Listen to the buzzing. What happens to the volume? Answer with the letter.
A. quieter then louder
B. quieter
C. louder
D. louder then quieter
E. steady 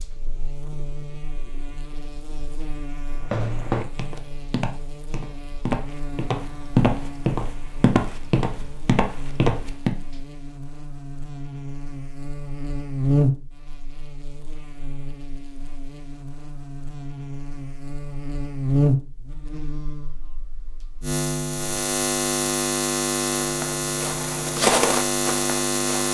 C.